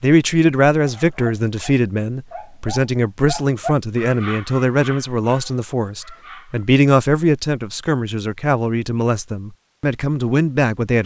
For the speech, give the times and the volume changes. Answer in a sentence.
You can hear the speech from 0.0 to 11.0 s, at a steady volume.